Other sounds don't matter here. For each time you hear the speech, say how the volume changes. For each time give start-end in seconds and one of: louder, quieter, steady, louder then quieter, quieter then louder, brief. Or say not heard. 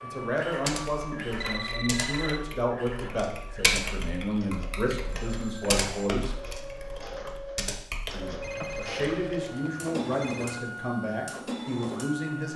0.0-6.3 steady
8.1-12.5 steady.